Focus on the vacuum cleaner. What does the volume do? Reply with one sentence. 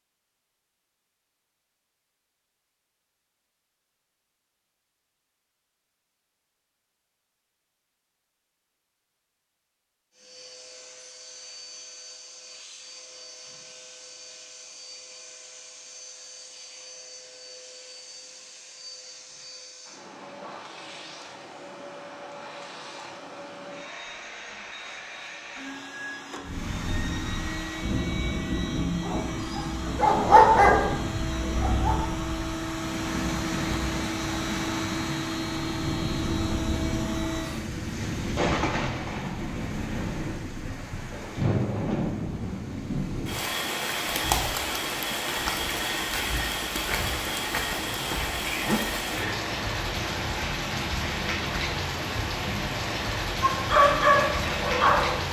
The loudness of the vacuum cleaner goes up.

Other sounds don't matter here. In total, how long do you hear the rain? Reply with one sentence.
The rain can be heard for 29 seconds in total.